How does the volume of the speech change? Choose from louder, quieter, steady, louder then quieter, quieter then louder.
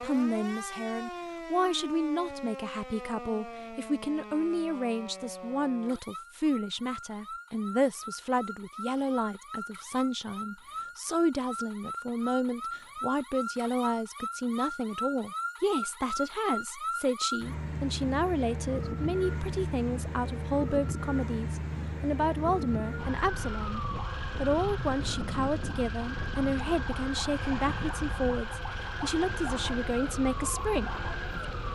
steady.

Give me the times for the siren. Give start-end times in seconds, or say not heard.
0.0-31.7.